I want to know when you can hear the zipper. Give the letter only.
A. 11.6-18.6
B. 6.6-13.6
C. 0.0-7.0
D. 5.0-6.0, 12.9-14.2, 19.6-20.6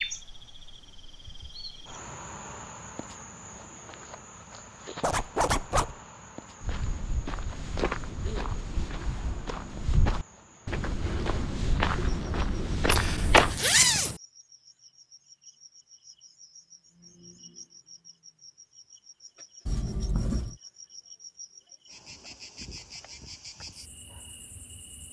D.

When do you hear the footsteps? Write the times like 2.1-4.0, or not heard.
6.6-13.6.